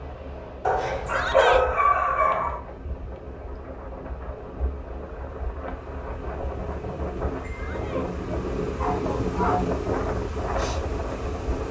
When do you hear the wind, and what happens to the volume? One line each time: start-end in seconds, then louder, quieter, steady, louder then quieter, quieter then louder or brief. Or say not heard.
0.0-11.6 louder.